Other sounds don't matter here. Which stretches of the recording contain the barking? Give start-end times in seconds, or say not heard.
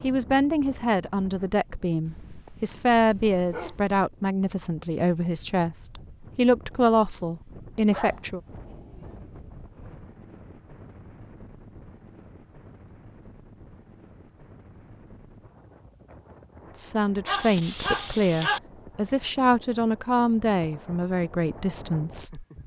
2.0-4.0, 7.9-9.2, 17.2-18.6.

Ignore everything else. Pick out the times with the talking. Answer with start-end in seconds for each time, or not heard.
0.0-8.4, 16.8-22.6.